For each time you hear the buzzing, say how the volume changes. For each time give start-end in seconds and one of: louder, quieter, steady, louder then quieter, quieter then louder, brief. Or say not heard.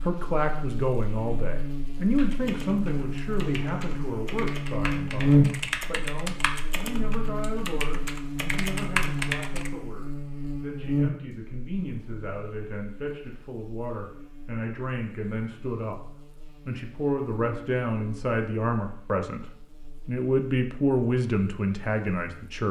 0.0-22.6 louder then quieter.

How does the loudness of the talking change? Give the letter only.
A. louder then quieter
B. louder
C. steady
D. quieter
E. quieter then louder
E.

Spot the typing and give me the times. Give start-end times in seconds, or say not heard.
2.1-9.7.